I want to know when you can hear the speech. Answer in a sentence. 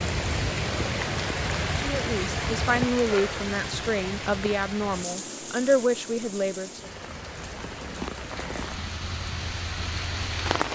You can hear the speech from 1.8 to 6.9 s.